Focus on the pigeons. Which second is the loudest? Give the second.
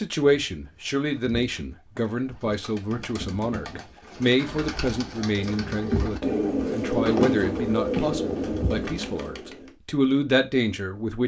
7 s.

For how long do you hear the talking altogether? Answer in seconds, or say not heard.
11 s.